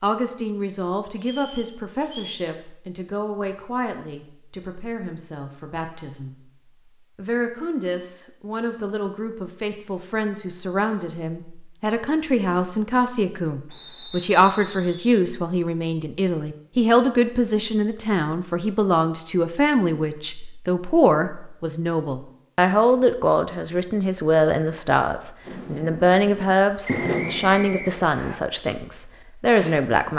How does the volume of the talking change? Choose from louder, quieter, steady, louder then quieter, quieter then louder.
louder.